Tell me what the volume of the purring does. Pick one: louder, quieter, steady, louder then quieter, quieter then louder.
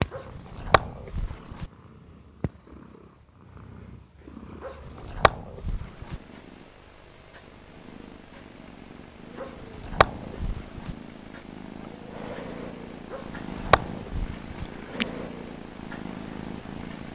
louder.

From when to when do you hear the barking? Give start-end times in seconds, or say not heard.
0.1-1.7, 4.6-6.2, 9.4-10.9, 13.1-14.7.